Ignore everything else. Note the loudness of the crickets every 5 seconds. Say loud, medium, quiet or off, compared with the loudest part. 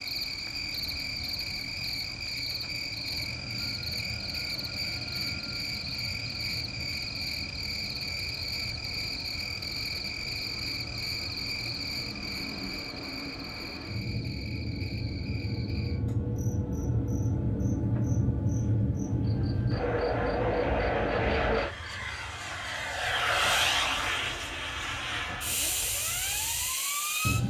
loud, loud, loud, quiet, quiet, quiet.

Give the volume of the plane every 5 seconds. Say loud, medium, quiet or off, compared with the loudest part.
quiet, quiet, medium, loud, loud, loud.